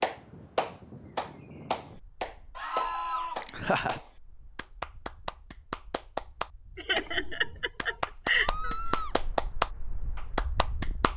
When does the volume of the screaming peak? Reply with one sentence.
The loudest moment of the screaming is at 3 seconds.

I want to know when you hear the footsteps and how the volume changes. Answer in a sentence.
You can't hear the footsteps here.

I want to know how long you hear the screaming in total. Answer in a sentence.
The screaming can be heard for 2 seconds in total.